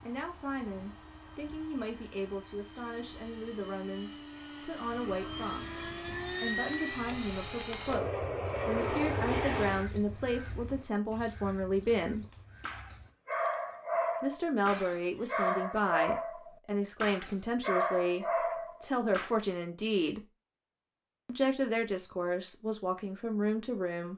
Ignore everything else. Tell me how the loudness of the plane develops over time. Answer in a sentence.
The volume of the plane goes up.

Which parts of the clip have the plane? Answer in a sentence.
The plane can be heard from 0.0 to 9.8 s.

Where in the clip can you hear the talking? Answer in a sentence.
The talking can be heard from 0.0 to 5.7 s, from 6.4 to 12.2 s, from 14.2 to 20.2 s and from 21.2 to 24.1 s.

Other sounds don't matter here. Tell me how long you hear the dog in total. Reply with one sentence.
You can hear the dog for 7 seconds altogether.